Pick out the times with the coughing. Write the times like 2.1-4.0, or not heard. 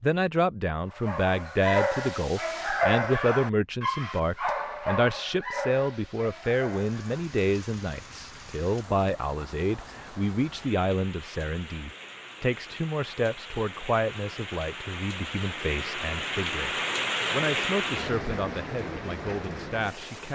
not heard.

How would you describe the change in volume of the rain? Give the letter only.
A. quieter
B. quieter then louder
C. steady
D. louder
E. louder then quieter
D.